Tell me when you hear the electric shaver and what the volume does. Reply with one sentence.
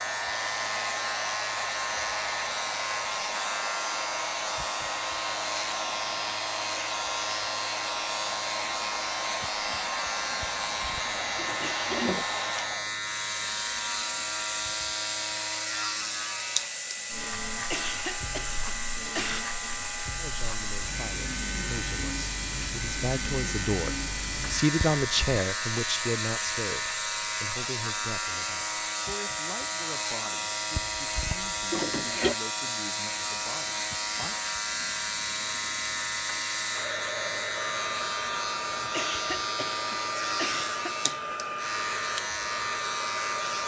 You can hear the electric shaver from 0.0 to 43.6 s, at a steady volume.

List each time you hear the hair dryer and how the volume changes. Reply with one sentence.
You can hear the hair dryer from 0.0 to 43.6 s, at a steady volume.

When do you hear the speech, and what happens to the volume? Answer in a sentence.
The speech can be heard from 20.1 to 34.4 s, getting louder then quieter.